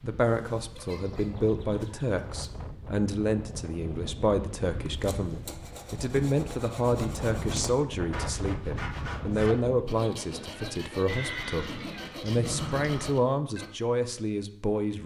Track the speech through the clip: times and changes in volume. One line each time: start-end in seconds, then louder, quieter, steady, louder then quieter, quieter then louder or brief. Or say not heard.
0.0-15.0 steady.